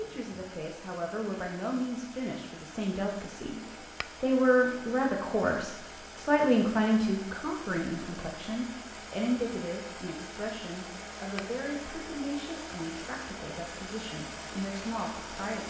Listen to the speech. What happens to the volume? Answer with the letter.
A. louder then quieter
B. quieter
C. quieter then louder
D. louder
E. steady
A.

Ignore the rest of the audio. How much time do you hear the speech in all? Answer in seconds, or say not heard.
15 s.